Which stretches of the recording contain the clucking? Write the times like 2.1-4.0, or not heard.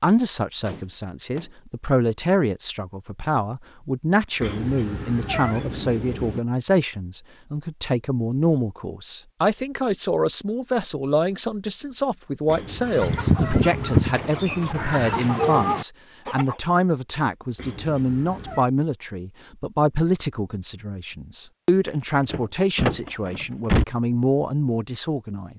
12.8-16.6.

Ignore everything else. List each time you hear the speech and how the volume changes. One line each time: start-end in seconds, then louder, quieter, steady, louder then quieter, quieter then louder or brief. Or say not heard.
0.0-25.5 steady.